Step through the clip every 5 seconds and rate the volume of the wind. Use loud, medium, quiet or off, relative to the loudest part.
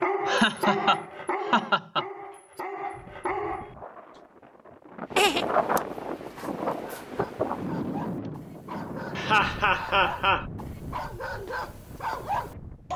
quiet, loud, quiet.